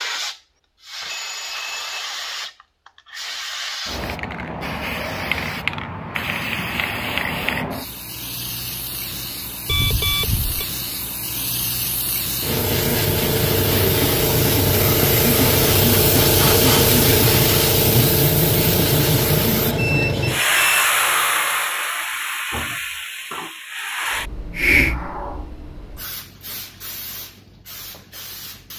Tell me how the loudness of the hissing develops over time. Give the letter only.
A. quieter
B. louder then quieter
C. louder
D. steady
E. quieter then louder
B.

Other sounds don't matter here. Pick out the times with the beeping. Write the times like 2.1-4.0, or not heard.
1.1-2.1, 9.7-10.7, 19.8-20.9.